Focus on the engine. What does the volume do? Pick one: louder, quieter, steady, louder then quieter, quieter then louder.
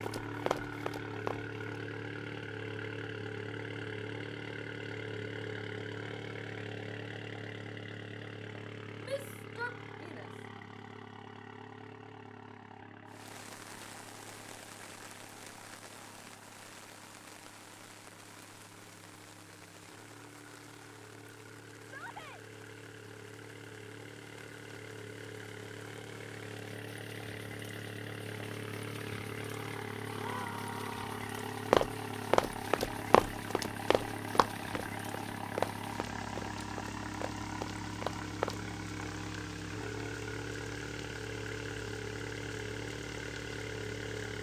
quieter then louder.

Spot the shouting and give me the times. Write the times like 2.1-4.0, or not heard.
9.0-10.3, 21.8-22.4, 30.1-31.1.